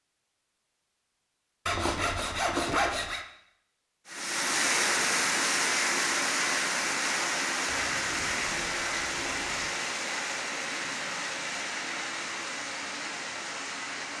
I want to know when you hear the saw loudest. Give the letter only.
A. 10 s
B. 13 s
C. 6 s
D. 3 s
D.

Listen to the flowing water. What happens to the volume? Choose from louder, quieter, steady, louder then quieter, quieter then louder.
quieter.